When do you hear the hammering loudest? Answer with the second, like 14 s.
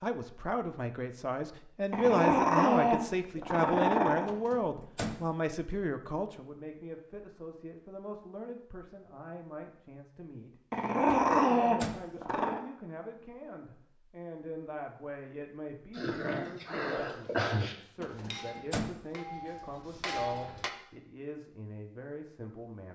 20 s.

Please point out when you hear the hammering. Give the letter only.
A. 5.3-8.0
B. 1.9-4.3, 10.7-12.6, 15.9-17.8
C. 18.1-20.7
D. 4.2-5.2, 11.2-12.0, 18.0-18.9
C.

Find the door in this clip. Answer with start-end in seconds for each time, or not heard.
4.2-5.2, 11.2-12.0, 18.0-18.9.